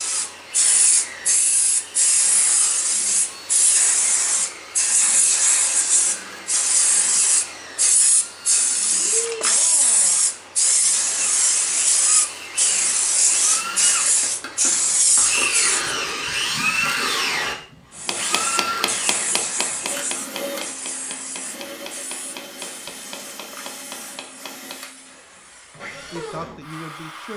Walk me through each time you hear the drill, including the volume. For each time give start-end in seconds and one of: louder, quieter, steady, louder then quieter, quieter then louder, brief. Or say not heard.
0.0-27.3 louder then quieter.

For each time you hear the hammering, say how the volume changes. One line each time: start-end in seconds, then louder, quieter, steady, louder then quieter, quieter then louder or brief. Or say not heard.
17.9-24.9 quieter.